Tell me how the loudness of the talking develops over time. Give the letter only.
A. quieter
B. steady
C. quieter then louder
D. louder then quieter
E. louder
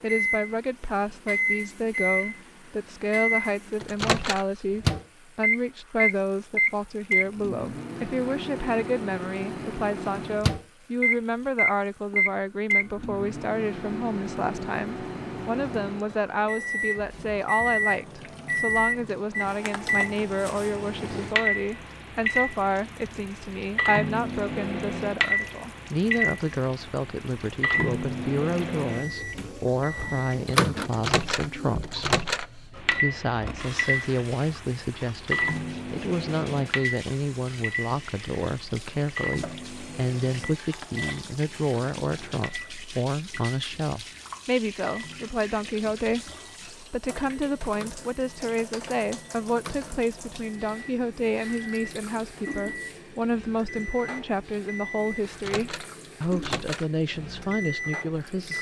B.